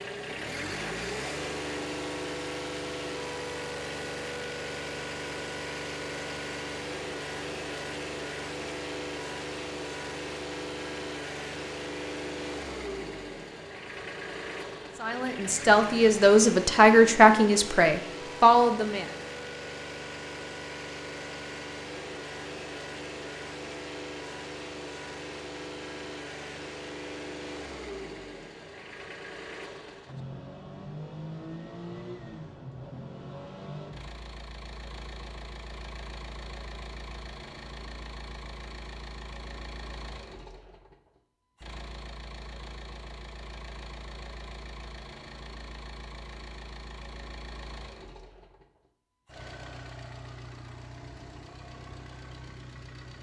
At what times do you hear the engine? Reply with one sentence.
The engine can be heard from 0.0 to 53.1 s.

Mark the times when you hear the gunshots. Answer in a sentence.
You can't hear the gunshots here.